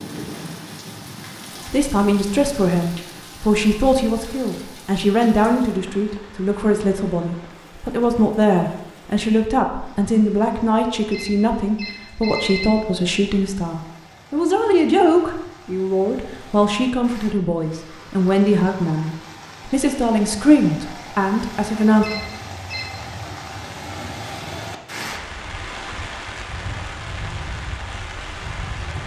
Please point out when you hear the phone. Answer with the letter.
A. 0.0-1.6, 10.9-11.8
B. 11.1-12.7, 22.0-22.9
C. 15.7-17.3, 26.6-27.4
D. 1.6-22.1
B.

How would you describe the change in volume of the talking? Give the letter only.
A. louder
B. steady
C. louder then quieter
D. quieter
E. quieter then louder
B.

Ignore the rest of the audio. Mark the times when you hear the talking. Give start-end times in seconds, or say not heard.
1.6-22.1.